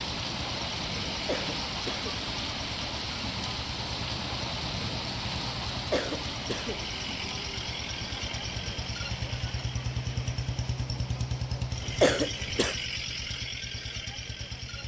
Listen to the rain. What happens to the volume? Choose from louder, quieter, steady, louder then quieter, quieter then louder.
quieter.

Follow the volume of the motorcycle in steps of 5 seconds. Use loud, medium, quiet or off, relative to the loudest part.
medium, loud, loud.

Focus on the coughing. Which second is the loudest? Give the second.
12 s.